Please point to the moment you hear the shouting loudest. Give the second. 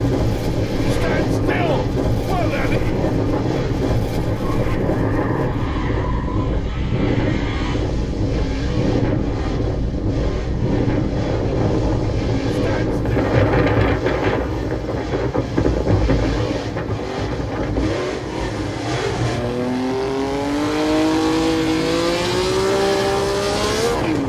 2 s.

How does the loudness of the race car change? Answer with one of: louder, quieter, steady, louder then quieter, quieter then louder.
louder.